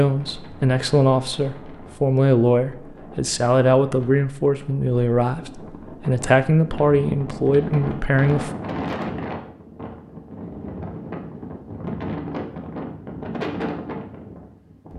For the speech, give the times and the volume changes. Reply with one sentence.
The speech can be heard from 0.0 to 8.6 s, at a steady volume.